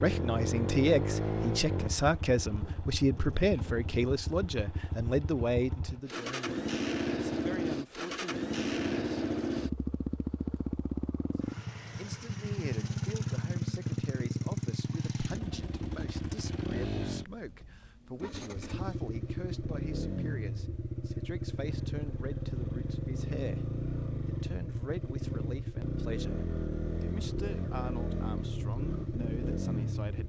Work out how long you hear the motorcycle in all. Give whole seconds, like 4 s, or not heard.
30 s.